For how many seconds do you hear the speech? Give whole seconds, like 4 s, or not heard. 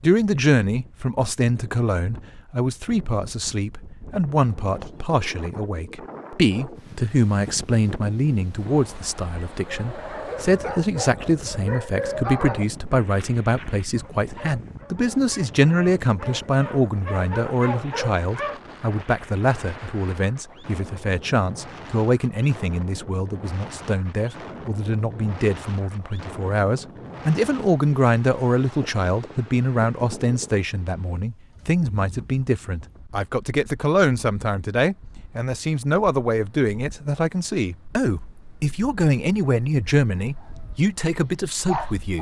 42 s.